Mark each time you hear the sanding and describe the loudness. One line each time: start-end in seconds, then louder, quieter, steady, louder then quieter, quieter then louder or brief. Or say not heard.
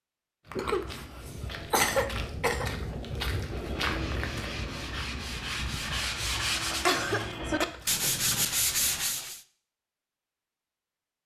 3.4-9.4 louder.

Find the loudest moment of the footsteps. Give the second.
4 s.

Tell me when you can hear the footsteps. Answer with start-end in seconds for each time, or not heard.
0.5-9.1.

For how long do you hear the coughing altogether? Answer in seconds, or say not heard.
3 s.